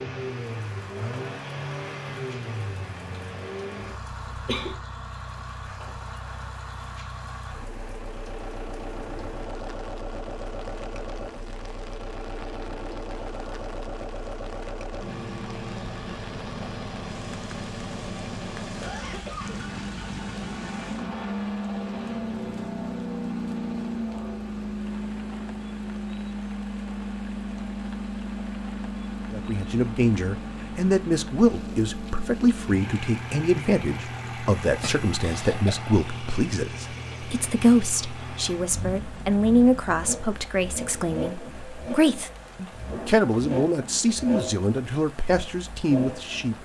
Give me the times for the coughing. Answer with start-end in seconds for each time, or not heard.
4.3-4.8, 18.8-19.6, 34.6-35.7.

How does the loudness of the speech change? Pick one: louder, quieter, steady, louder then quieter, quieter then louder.
steady.